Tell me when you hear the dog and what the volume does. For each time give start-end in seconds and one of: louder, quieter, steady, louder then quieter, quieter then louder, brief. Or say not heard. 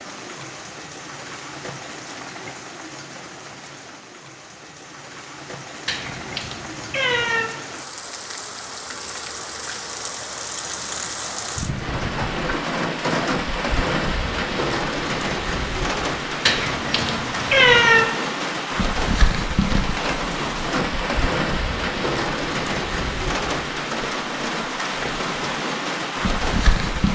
not heard.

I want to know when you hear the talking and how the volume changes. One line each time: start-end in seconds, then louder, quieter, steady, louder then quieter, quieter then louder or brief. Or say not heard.
not heard.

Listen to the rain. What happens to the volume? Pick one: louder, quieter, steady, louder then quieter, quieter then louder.
louder.